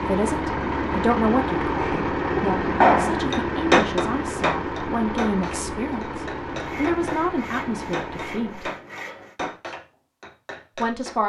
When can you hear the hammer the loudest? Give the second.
3 s.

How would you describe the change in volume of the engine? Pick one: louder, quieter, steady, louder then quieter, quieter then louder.
quieter.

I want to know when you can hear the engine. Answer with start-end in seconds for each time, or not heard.
0.0-8.8.